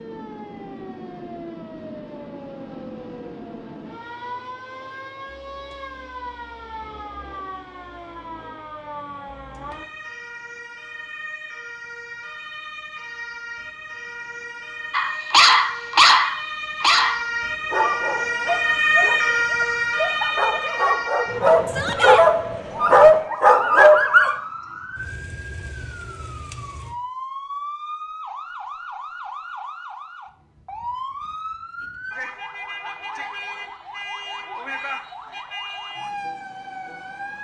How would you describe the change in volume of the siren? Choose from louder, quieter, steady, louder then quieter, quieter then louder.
louder then quieter.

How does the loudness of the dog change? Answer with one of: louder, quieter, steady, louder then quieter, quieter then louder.
quieter then louder.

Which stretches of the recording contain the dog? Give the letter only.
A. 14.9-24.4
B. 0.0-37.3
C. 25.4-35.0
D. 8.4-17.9
A.